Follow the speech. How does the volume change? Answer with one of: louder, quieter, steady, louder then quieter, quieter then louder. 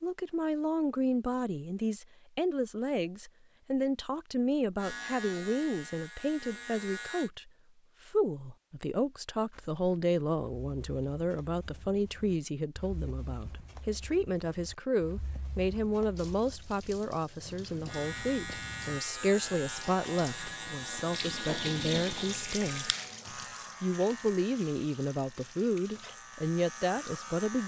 steady.